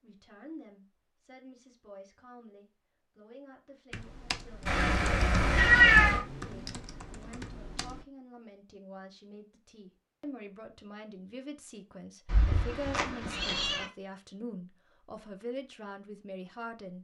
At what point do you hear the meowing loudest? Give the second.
6 s.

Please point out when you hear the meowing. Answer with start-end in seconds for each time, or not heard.
4.7-6.2, 12.2-13.8.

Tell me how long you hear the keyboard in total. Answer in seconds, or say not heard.
4 s.